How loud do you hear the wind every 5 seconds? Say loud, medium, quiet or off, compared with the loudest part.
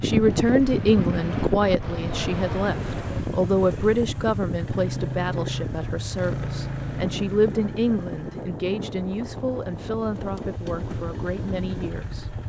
loud, medium, medium.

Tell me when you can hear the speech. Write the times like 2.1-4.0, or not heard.
0.0-12.3.